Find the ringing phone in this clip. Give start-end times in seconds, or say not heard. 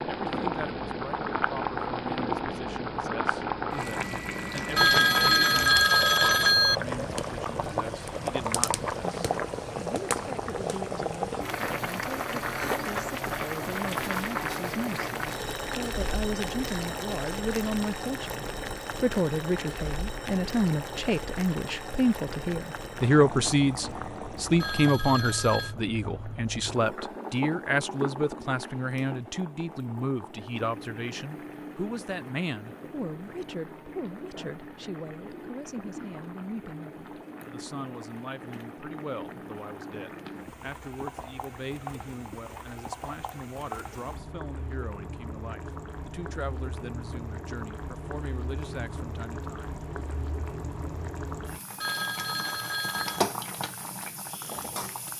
4.8-6.8, 24.6-25.8, 51.8-53.3.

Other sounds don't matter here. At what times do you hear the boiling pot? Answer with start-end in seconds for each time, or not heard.
0.0-55.1.